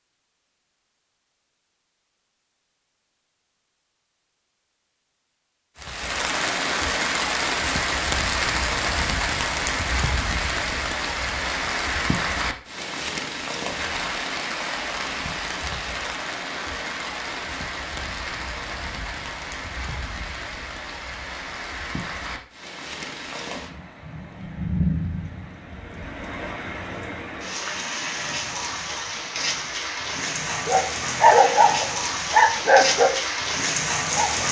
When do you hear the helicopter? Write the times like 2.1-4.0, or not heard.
not heard.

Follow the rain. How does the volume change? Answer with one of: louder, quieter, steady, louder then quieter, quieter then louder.
quieter then louder.